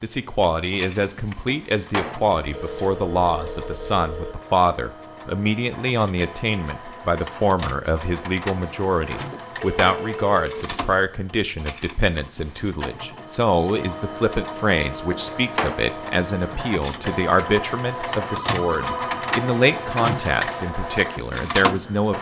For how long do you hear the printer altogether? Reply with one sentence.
You can hear the printer for 22 seconds altogether.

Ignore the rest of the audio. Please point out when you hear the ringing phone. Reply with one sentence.
The ringing phone can be heard from 2.5 to 4.3 s, from 9.6 to 10.6 s and from 18.2 to 19.2 s.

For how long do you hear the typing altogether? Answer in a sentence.
You can't hear the typing here.